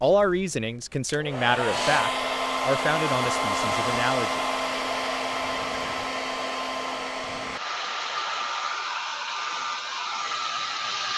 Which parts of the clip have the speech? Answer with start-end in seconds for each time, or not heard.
0.0-4.5.